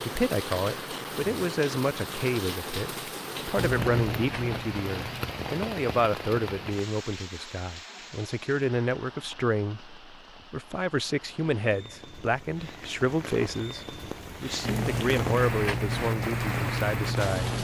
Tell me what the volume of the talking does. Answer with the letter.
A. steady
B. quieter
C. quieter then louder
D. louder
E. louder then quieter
A.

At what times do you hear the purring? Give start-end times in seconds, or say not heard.
3.5-5.3, 14.6-17.5.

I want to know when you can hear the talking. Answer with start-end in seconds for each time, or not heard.
0.0-17.5.